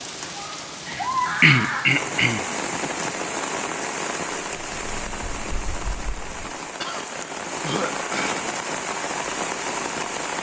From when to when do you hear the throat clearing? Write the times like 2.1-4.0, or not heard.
0.8-3.1, 6.8-8.3.